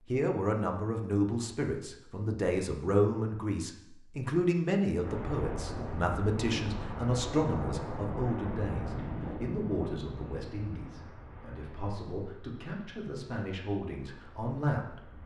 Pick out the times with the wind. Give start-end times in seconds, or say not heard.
5.0-15.2.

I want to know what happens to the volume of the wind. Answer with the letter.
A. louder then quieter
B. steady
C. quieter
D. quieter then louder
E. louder
C.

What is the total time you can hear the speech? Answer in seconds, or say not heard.
15 s.